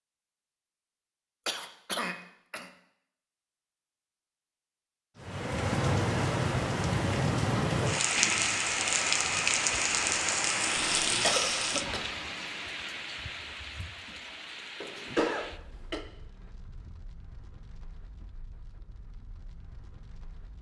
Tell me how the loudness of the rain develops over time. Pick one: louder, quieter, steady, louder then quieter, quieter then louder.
quieter.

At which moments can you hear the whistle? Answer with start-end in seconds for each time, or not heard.
not heard.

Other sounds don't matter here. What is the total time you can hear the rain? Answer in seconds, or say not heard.
15 s.